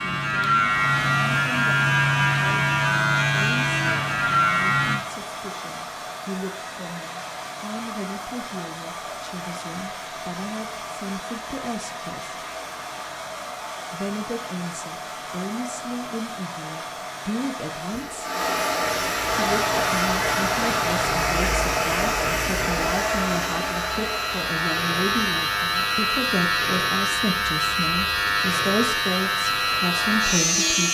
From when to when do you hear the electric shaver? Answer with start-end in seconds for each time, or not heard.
0.0-5.0, 19.3-30.8.